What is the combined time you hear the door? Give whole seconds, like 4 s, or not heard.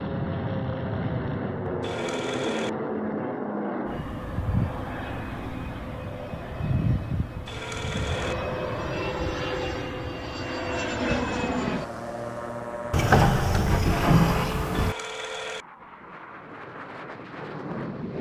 2 s.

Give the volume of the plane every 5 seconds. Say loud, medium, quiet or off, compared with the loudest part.
loud, loud, loud, medium.